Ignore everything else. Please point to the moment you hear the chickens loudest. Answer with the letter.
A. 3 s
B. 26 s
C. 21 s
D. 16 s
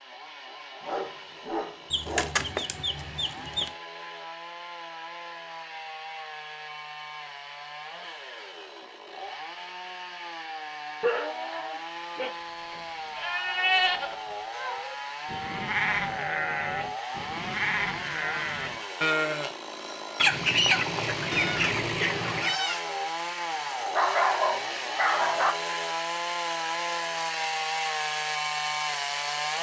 C.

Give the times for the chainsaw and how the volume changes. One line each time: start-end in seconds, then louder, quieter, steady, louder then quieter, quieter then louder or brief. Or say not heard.
0.0-29.5 louder.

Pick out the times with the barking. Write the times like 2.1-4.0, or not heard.
0.8-2.4, 11.0-12.3, 23.9-25.6.